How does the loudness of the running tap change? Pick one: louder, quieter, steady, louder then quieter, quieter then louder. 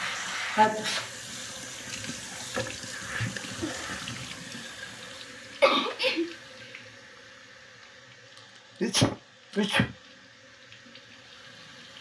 quieter.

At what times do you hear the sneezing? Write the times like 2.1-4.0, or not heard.
0.6-1.1, 5.6-6.3, 8.8-9.9.